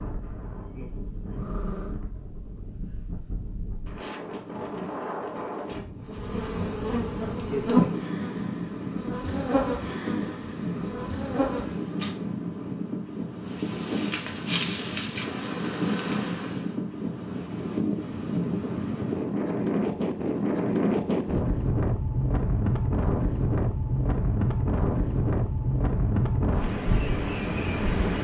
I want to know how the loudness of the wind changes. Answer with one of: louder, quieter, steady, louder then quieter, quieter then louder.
louder.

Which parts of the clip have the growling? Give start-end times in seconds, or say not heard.
1.4-2.0.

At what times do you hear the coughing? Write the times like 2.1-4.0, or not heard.
not heard.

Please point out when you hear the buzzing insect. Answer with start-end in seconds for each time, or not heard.
6.0-12.2, 13.4-16.8.